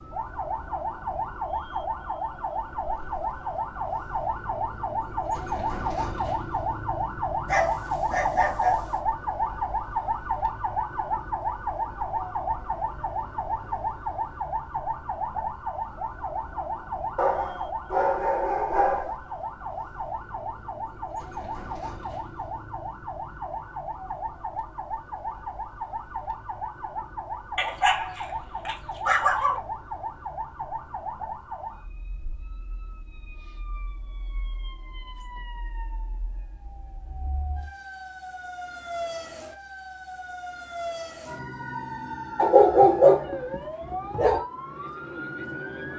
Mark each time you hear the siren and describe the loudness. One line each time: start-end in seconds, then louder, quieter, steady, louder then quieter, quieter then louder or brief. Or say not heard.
0.0-45.9 quieter.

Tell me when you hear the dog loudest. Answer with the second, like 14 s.
43 s.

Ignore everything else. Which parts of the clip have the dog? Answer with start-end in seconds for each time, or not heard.
7.5-9.0, 17.1-19.1, 27.6-29.6, 42.4-44.4.